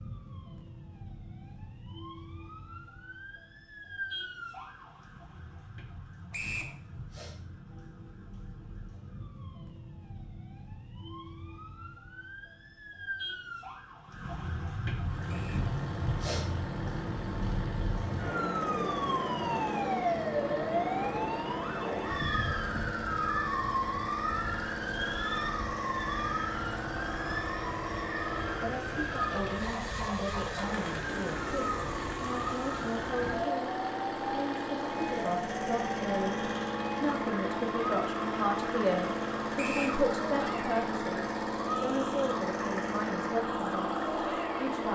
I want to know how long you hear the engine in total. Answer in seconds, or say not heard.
30 s.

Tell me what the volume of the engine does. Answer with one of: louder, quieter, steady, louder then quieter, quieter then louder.
louder.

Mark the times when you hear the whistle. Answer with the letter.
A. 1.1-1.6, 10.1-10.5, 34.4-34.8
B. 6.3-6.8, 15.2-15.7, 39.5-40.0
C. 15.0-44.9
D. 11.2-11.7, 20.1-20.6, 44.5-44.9
B.